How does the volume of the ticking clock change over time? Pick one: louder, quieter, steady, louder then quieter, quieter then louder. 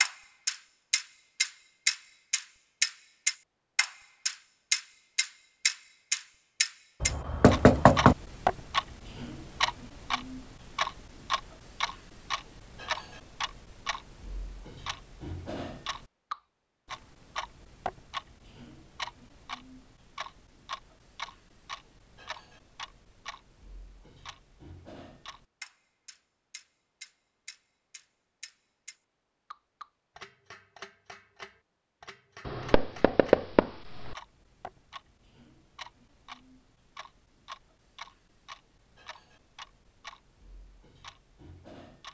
quieter.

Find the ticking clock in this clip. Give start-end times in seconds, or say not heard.
0.0-42.0.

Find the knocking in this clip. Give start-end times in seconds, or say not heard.
7.0-8.2, 32.5-34.1.